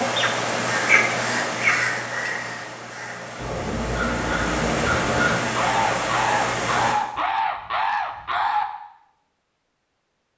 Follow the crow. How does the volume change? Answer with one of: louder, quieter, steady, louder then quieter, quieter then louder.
quieter then louder.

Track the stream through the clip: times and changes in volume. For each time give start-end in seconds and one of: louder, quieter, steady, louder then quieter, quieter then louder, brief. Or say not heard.
0.0-7.0 quieter then louder.